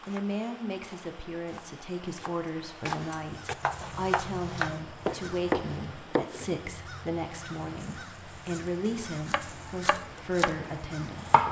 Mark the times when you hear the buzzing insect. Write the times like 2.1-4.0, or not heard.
not heard.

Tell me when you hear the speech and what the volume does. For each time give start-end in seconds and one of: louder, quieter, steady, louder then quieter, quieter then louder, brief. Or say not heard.
0.1-11.2 steady.